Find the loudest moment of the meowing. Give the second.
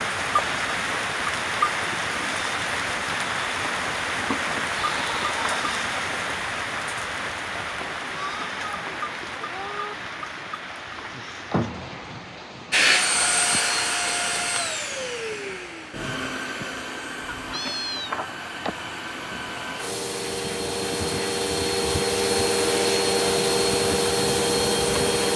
18 s.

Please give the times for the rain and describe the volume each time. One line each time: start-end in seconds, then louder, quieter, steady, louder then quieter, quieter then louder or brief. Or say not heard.
0.0-25.3 quieter then louder.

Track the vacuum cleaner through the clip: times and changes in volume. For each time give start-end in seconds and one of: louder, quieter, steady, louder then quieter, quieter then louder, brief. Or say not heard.
12.7-25.3 quieter then louder.